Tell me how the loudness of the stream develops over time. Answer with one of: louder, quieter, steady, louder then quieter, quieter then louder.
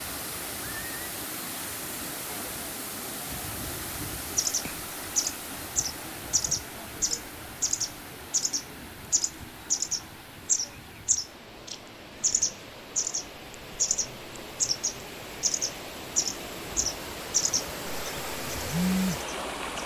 quieter then louder.